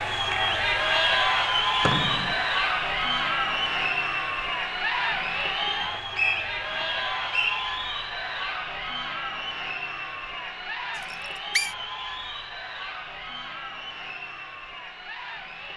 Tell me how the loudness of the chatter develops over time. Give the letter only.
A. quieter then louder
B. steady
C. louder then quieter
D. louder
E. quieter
E.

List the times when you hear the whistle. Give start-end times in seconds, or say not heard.
1.8-2.4, 5.7-7.6, 11.0-11.8.